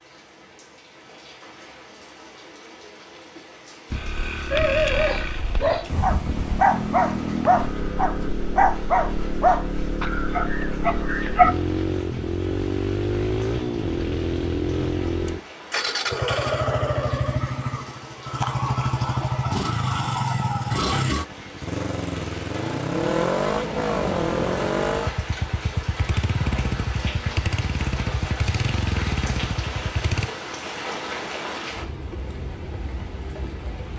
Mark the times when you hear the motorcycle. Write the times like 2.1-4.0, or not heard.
3.9-30.3.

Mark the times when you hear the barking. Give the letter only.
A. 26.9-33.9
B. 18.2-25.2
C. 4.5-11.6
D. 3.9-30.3
C.